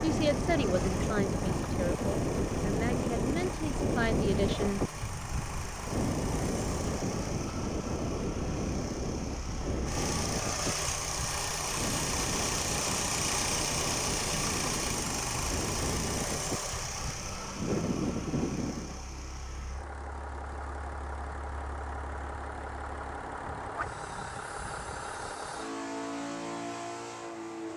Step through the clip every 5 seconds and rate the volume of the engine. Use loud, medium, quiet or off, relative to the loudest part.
medium, medium, loud, medium, medium, medium.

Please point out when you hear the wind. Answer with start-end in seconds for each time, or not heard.
0.0-18.9.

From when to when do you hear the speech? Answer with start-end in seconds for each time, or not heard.
0.0-4.8.